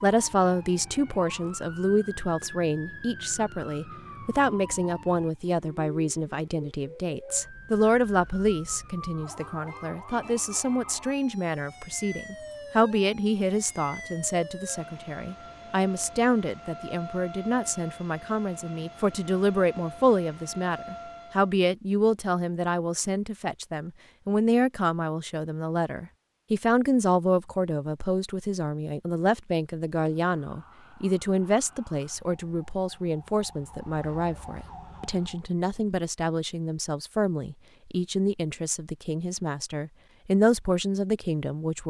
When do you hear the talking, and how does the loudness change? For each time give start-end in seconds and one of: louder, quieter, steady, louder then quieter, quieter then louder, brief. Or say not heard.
0.0-41.8 steady.